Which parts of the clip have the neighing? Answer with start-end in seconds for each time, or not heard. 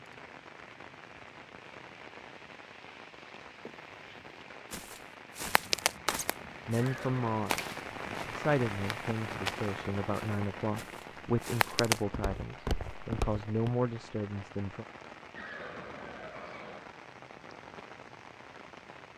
3.6-4.5, 6.8-7.3, 15.3-16.9.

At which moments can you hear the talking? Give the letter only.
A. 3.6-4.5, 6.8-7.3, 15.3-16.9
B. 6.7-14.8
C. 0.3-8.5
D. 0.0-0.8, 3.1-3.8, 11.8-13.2
B.